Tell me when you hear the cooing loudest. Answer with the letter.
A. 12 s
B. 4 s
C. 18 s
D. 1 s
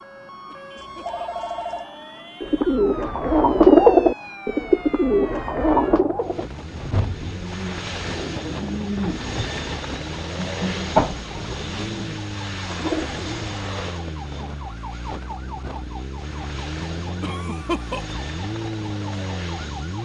B.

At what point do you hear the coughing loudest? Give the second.
18 s.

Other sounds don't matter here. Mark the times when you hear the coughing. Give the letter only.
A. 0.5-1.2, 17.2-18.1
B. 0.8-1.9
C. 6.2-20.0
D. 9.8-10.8
A.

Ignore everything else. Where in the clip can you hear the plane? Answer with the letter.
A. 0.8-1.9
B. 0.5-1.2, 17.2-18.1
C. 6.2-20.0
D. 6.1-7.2
C.